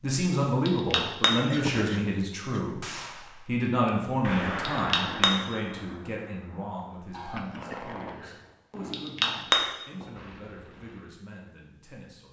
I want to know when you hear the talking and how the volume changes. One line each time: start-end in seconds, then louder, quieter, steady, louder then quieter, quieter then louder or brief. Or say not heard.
0.0-2.8 brief
3.5-12.2 quieter.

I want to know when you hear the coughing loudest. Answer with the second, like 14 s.
2 s.